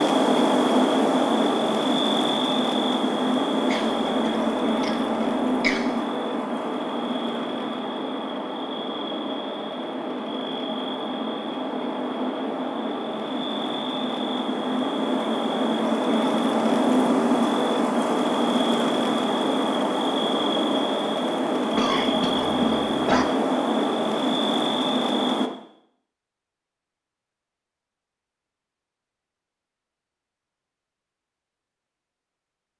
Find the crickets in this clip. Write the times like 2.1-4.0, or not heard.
0.0-25.5.